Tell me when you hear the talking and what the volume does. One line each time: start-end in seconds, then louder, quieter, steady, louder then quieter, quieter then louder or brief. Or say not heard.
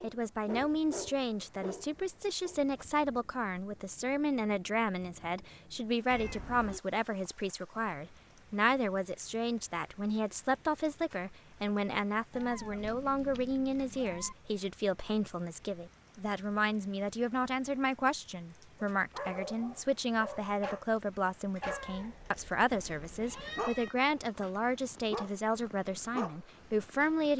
0.0-27.3 steady.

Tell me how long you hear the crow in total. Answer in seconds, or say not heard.
not heard.